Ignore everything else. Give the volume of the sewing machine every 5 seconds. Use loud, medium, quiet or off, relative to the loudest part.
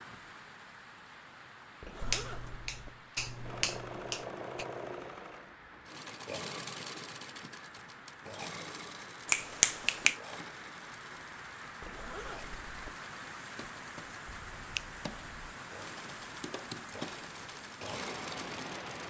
loud, loud, medium, loud.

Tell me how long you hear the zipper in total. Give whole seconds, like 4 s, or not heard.
2 s.